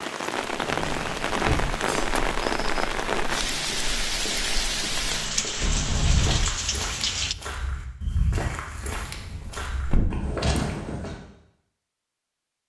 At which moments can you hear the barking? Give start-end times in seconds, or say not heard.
not heard.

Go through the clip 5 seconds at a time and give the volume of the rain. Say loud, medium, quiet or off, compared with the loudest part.
loud, loud, off.